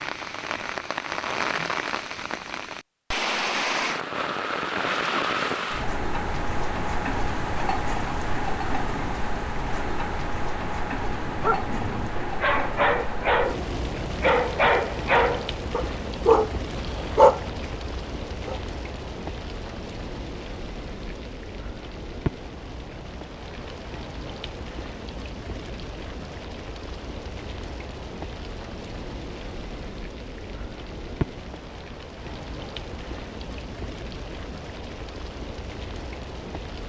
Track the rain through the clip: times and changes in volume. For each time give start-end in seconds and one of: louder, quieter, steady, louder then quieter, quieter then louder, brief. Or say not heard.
0.0-36.8 quieter.